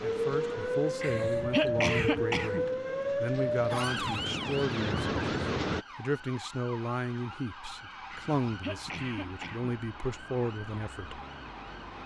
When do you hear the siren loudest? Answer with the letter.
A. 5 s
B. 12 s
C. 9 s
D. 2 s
D.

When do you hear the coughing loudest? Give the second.
2 s.